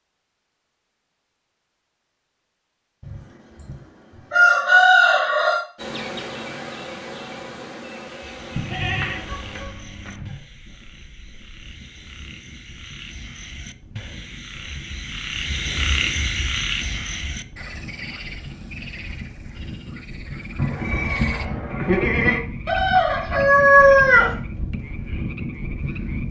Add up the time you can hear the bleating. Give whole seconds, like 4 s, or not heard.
4 s.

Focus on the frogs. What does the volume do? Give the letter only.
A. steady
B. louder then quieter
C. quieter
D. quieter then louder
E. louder
B.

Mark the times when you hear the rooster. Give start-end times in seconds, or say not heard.
3.0-5.7, 22.6-24.4.